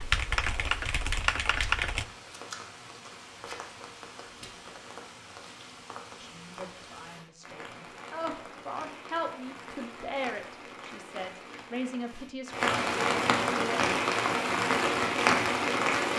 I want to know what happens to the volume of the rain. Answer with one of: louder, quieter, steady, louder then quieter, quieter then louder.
louder.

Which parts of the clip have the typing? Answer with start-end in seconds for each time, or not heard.
0.0-2.0.